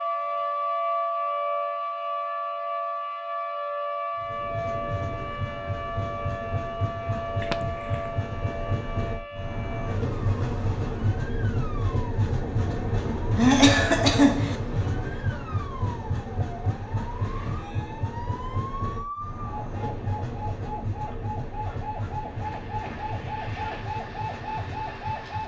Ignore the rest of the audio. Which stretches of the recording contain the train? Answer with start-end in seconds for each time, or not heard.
4.2-25.4.